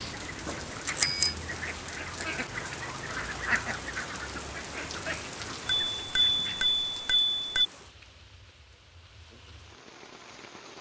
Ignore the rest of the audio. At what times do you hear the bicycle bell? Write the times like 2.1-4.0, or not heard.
0.8-1.4, 5.7-7.7.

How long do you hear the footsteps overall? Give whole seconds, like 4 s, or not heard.
not heard.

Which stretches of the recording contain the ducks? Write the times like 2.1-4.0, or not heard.
0.1-6.8.